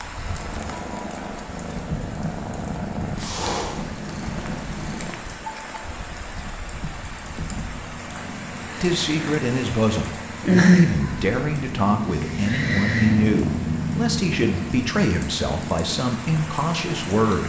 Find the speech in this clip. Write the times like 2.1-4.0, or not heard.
8.8-17.4.